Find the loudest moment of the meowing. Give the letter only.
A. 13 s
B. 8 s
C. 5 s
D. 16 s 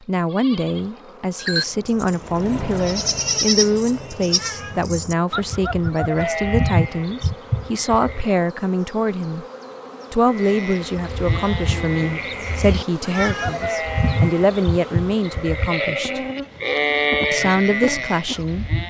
A.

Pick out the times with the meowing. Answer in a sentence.
You can hear the meowing from 4.2 to 4.9 s and from 13.0 to 13.7 s.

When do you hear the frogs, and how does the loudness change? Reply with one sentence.
You can't hear the frogs here.